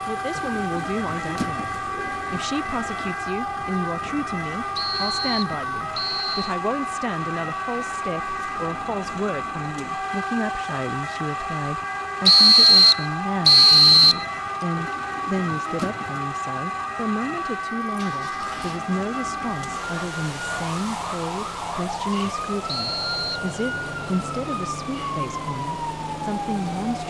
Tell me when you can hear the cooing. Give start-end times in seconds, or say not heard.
0.3-3.1, 14.8-16.2.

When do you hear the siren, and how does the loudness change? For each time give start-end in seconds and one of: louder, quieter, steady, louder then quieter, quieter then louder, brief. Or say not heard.
0.0-27.0 steady.